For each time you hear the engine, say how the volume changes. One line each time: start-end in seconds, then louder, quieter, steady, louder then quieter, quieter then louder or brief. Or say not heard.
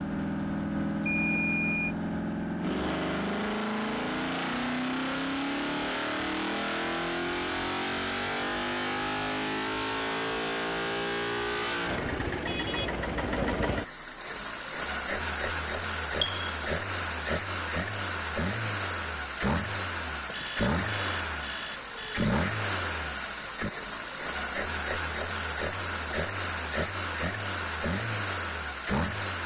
0.0-29.4 steady.